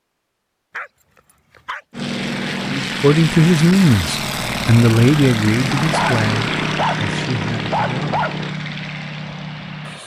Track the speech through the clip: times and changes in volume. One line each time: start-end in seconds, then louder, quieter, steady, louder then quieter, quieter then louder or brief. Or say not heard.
2.7-8.2 quieter.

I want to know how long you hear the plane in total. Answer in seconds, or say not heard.
8 s.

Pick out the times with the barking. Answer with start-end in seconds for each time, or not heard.
0.7-2.0, 5.7-8.6.